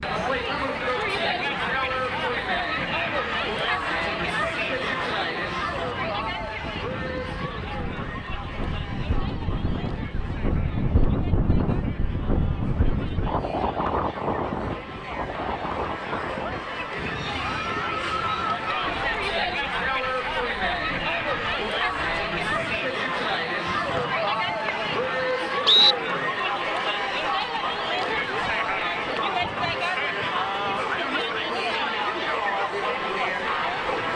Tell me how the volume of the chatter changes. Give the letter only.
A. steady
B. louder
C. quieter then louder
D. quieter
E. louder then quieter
C.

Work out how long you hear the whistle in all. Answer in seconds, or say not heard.
2 s.